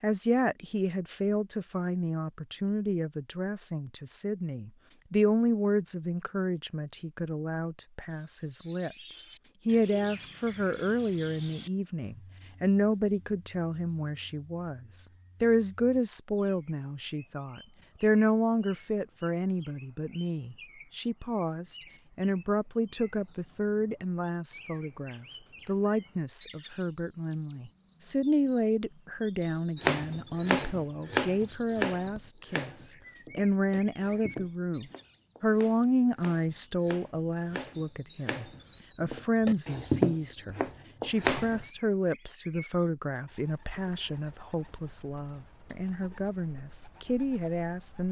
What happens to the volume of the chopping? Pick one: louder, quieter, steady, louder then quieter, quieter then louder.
quieter then louder.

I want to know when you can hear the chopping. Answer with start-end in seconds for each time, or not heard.
29.8-41.6.